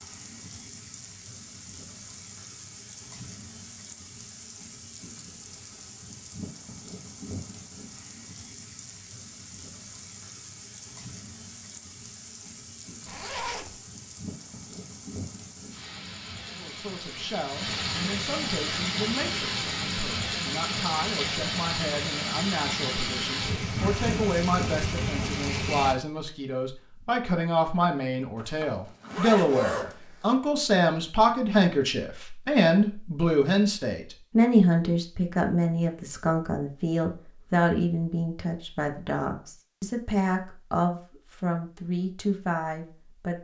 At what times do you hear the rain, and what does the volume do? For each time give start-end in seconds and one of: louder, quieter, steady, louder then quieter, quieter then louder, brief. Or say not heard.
0.0-25.9 louder.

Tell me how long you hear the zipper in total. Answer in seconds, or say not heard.
3 s.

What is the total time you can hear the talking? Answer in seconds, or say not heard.
27 s.